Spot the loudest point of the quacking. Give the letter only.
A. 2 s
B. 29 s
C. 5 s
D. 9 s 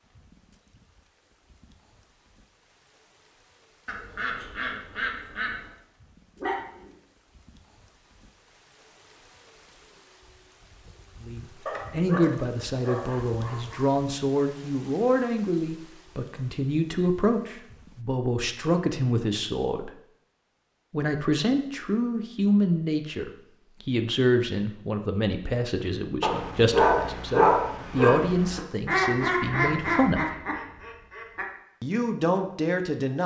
B.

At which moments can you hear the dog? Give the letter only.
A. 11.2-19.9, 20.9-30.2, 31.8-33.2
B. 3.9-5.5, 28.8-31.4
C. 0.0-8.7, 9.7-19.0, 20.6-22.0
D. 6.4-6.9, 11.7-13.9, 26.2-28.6
D.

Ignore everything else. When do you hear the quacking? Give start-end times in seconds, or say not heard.
3.9-5.5, 28.8-31.4.